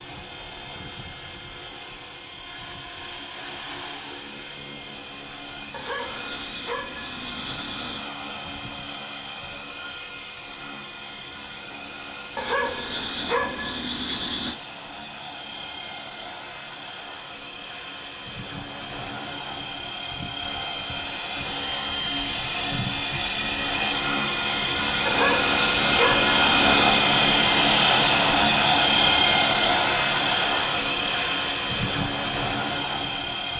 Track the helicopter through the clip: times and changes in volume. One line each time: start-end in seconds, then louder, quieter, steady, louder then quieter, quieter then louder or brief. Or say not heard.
0.0-33.5 louder.